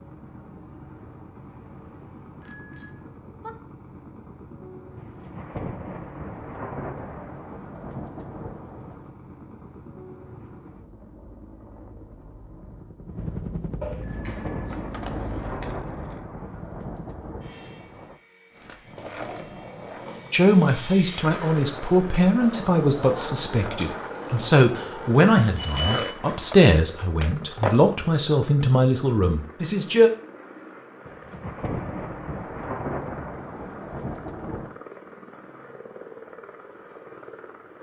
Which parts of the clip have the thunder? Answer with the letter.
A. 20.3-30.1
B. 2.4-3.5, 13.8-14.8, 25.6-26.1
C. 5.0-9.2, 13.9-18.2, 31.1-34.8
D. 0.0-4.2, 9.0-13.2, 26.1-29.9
C.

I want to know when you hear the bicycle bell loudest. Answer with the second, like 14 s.
26 s.